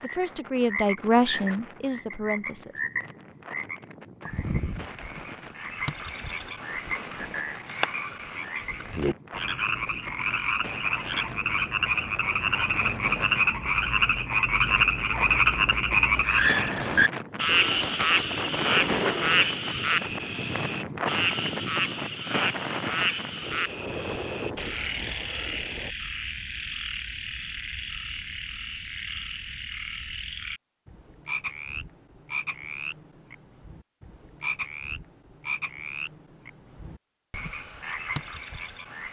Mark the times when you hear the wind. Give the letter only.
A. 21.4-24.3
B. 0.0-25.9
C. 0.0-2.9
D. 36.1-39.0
B.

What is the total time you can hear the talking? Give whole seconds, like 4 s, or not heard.
3 s.